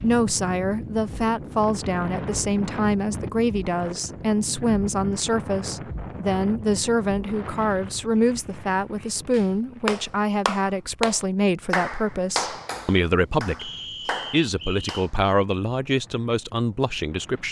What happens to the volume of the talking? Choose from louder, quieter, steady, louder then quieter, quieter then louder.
steady.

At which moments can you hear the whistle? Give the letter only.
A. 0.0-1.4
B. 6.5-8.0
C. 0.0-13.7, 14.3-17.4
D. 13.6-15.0
D.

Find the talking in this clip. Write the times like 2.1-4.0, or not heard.
0.0-13.7, 14.3-17.4.